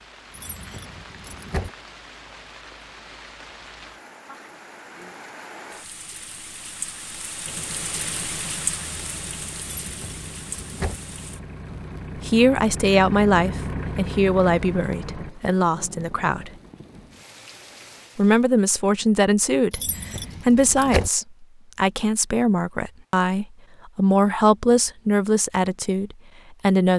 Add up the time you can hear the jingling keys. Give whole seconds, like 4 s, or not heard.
4 s.